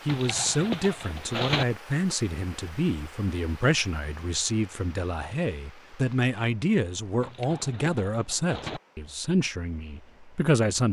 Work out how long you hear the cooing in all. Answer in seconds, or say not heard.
3 s.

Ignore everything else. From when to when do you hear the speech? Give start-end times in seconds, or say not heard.
0.1-10.8.